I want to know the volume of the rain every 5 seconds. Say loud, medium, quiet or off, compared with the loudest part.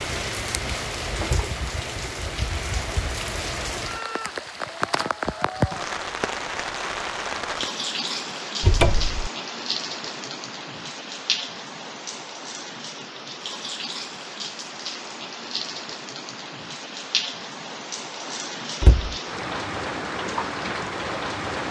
loud, loud, medium, loud, loud.